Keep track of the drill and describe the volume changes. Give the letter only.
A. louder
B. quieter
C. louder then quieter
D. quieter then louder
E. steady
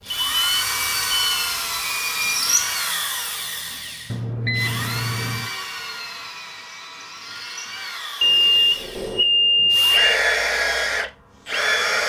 D.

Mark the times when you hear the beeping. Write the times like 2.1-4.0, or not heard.
0.1-1.4, 4.1-5.5, 8.2-10.2.